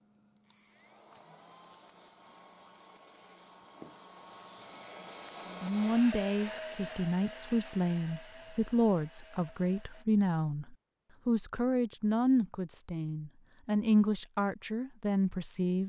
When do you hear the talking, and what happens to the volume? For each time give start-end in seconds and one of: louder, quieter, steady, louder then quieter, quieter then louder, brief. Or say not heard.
5.6-15.8 steady.